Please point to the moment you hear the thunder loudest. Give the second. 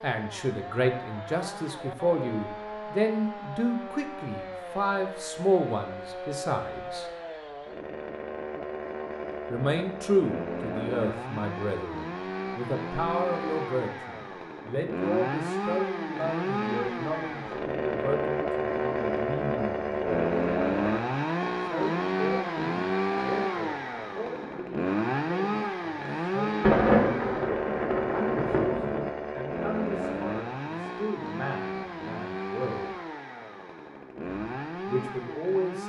27 s.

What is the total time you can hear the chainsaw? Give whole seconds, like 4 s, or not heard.
36 s.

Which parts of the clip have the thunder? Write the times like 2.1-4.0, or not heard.
26.6-29.1.